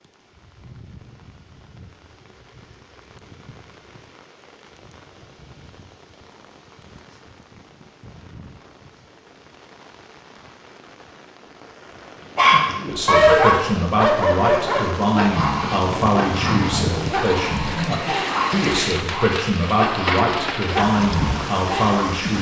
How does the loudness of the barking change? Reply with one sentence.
The loudness of the barking goes down.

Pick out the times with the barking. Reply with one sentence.
You can hear the barking from 12.3 to 22.3 s.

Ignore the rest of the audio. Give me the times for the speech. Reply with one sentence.
The speech can be heard from 12.8 to 22.3 s.